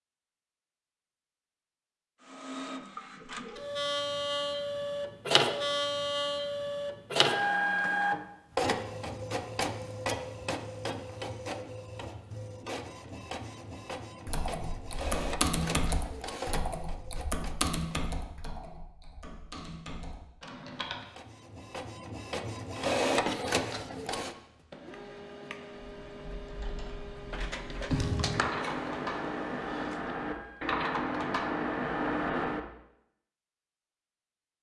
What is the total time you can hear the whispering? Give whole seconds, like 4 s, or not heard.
not heard.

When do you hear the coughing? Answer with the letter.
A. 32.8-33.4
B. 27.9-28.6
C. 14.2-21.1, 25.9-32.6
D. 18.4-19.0
B.